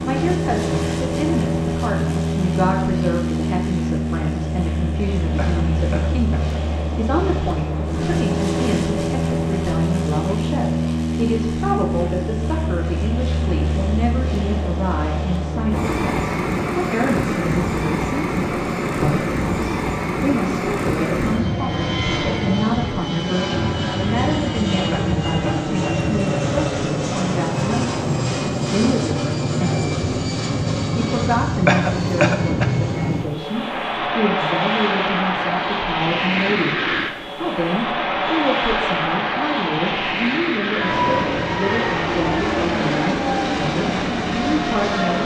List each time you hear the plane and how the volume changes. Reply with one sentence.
You can hear the plane from 0.0 to 45.2 s, at a steady volume.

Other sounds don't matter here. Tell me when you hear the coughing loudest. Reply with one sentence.
The loudest moment of the coughing is at 32 seconds.